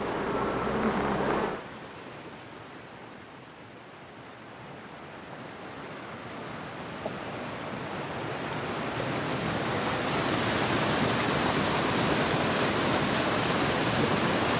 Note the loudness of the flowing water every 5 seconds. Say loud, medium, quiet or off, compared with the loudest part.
quiet, medium, loud.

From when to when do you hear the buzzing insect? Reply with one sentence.
The buzzing insect can be heard from 0.0 to 1.6 s.